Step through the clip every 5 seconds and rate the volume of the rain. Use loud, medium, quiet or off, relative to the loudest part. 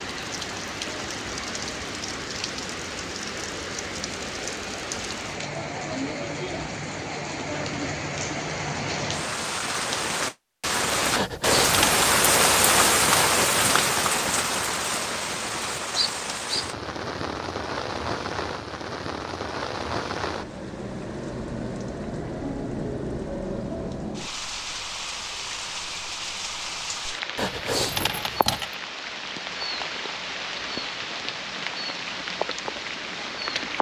medium, medium, loud, medium, medium, medium, medium.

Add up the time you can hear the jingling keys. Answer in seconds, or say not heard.
2 s.